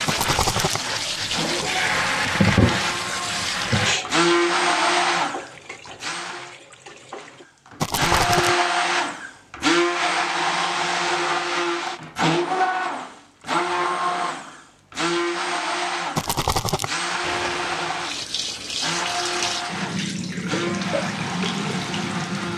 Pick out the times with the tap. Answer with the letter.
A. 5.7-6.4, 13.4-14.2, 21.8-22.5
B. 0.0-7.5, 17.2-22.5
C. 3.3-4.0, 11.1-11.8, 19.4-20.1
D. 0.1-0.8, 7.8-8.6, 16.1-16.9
B.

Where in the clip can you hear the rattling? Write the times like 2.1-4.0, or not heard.
0.1-0.8, 7.8-8.6, 16.1-16.9.